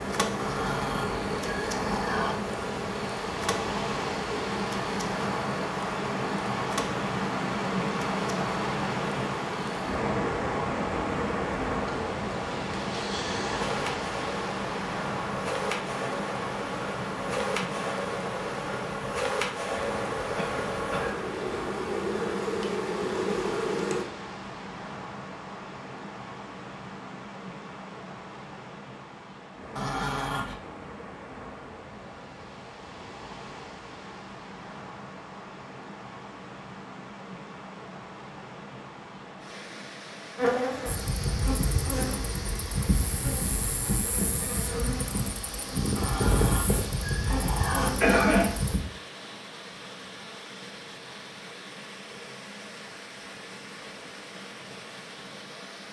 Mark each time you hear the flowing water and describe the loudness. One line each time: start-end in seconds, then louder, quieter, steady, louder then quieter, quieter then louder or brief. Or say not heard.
0.0-55.8 quieter.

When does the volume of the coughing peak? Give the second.
48 s.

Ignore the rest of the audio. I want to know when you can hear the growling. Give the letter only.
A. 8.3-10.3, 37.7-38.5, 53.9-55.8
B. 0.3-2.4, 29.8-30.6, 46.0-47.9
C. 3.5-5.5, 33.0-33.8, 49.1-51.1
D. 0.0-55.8
B.